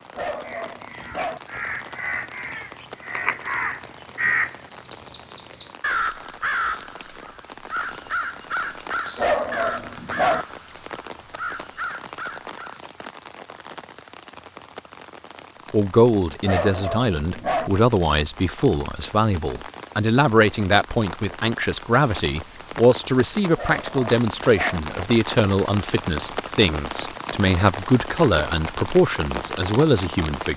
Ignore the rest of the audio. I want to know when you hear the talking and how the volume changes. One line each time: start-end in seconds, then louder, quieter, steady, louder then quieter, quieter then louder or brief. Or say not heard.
15.7-30.5 steady.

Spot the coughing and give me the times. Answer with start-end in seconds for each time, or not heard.
not heard.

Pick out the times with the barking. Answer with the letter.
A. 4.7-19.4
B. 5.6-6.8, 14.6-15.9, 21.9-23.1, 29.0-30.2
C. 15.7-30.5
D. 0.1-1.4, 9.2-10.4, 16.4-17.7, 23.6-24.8
D.